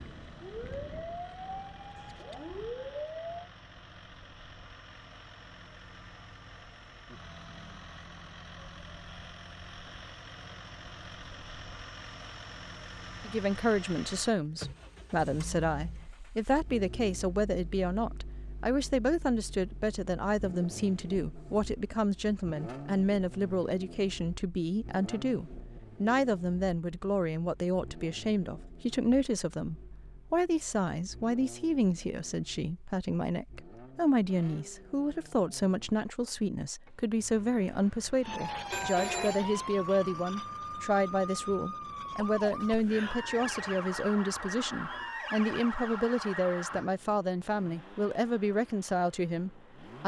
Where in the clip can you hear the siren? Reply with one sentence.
The siren can be heard from 0.0 to 3.5 s and from 38.2 to 46.9 s.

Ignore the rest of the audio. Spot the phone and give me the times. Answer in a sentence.
You can hear the phone from 38.7 to 39.4 s.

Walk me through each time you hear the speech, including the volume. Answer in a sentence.
The speech can be heard from 13.2 to 50.0 s, at a steady volume.